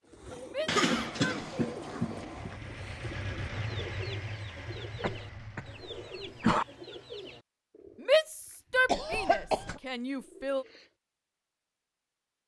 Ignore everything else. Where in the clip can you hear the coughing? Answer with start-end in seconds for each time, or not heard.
0.7-2.5, 5.0-6.7, 8.8-9.8.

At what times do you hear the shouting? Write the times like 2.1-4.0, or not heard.
0.5-1.4, 8.0-10.7.